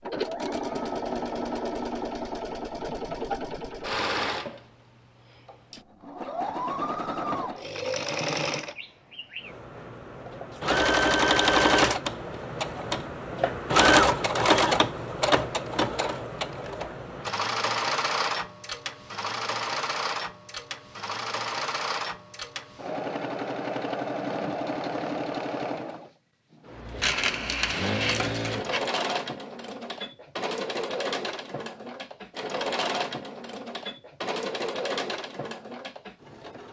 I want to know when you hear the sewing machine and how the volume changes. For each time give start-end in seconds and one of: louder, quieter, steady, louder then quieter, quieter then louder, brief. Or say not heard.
0.0-36.6 louder then quieter.